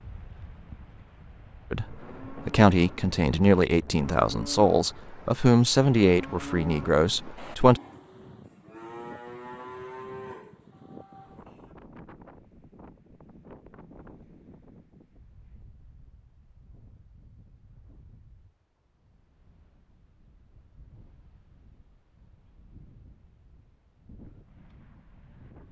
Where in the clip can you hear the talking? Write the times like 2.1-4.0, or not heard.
1.7-7.8.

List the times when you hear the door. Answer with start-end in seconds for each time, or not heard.
not heard.